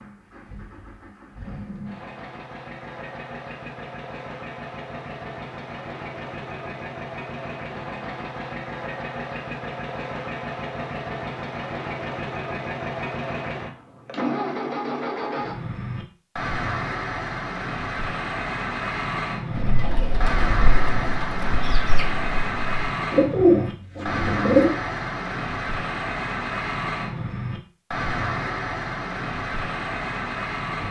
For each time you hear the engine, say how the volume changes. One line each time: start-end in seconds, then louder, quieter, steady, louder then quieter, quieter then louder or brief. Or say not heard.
0.0-30.8 louder.